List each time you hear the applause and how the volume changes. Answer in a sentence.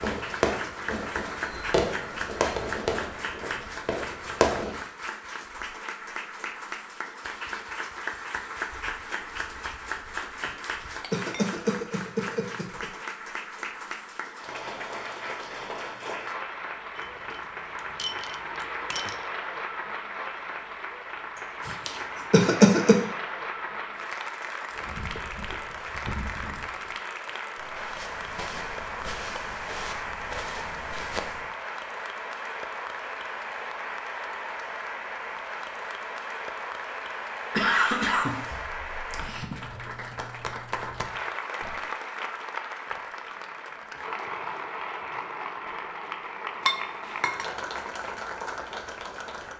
The applause can be heard from 0.0 to 49.5 s, at a steady volume.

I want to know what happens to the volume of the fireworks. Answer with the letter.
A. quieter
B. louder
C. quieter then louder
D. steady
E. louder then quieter
A.